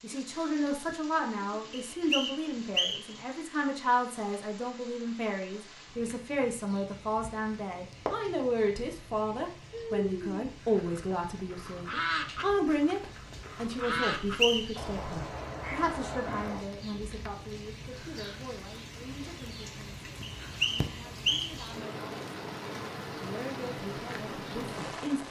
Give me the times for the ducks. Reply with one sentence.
The ducks can be heard from 9.7 to 16.6 s.